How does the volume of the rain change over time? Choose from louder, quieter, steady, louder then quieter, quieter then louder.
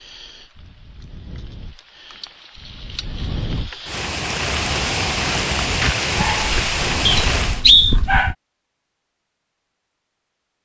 louder.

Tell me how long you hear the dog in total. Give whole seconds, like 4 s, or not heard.
2 s.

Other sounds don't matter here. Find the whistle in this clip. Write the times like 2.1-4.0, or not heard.
7.0-8.0.